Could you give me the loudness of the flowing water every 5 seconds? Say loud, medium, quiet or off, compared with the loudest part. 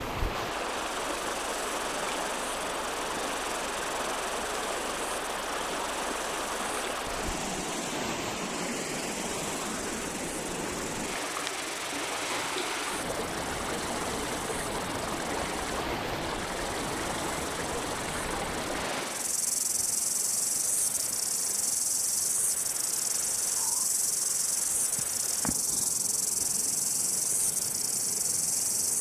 loud, loud, loud, loud, quiet, quiet.